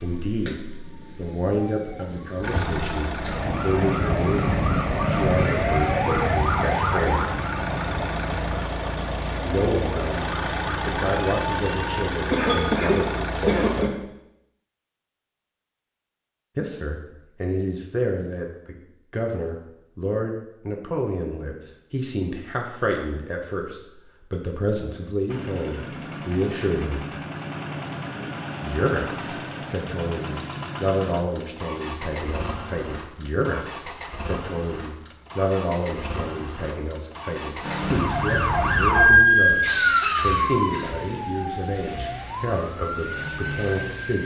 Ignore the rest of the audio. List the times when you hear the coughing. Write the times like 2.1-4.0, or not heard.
12.3-13.9, 39.5-41.0.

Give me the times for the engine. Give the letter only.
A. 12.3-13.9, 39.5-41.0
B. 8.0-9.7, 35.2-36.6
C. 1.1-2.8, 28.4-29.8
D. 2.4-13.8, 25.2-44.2
D.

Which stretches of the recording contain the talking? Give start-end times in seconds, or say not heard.
0.0-0.6, 1.1-7.2, 9.4-14.1, 16.6-27.1, 28.6-44.2.